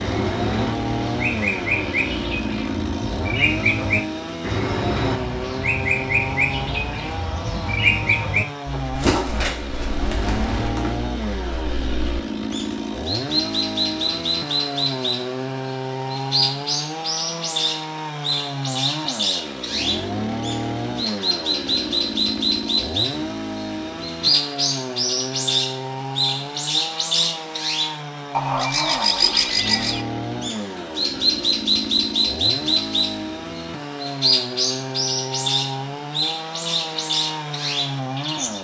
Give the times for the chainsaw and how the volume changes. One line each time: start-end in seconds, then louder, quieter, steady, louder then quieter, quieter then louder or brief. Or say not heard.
0.0-38.5 steady.